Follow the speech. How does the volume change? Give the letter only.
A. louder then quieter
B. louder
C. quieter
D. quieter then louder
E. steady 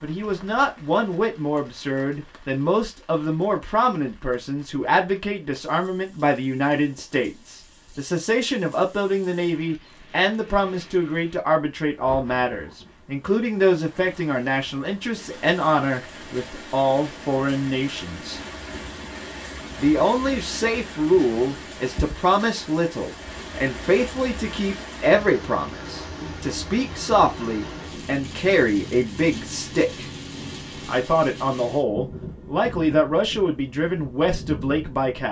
E.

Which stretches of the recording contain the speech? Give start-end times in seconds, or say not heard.
0.0-18.4, 19.8-30.1, 30.9-35.2.